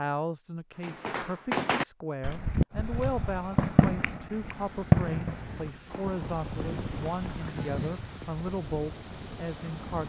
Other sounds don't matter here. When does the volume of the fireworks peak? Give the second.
5 s.